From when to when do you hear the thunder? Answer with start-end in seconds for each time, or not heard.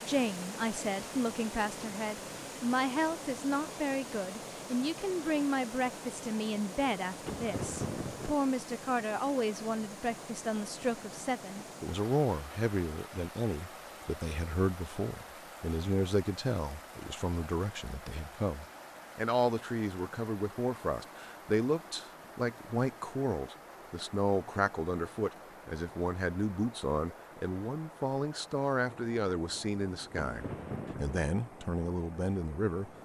7.2-8.3, 30.1-31.2.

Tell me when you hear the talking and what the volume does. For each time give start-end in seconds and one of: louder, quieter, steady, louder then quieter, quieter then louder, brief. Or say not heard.
0.0-32.9 steady.